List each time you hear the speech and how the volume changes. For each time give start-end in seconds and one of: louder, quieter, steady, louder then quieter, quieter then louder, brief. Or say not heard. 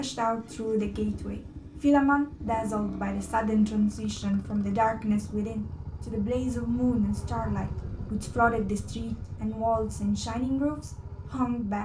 0.0-11.7 steady.